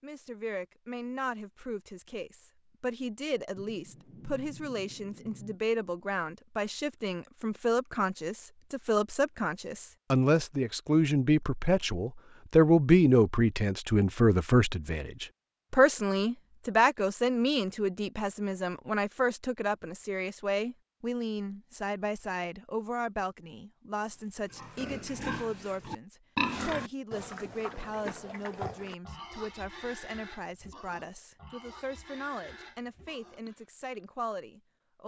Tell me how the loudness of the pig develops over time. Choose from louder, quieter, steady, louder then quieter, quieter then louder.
quieter.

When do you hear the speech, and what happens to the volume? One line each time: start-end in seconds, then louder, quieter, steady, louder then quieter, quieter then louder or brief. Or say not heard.
0.0-35.0 louder then quieter.